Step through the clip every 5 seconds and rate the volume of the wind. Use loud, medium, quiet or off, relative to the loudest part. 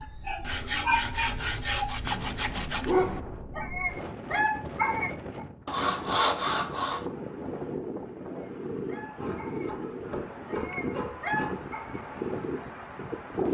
medium, loud, loud.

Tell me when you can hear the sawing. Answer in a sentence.
The sawing can be heard from 0.4 to 3.0 s, from 5.7 to 7.0 s and from 9.2 to 11.6 s.